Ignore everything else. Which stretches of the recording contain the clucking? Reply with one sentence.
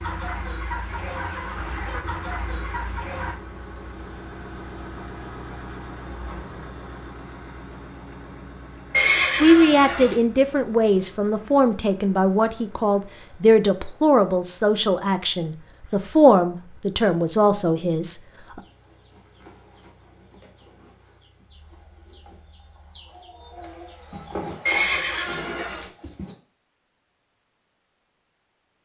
You can hear the clucking from 0.0 to 3.4 s and from 18.6 to 26.4 s.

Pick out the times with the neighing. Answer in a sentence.
The neighing can be heard from 8.9 to 10.2 s and from 24.6 to 25.9 s.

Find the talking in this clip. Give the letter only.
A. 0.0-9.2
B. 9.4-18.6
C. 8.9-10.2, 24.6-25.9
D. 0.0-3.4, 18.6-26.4
B.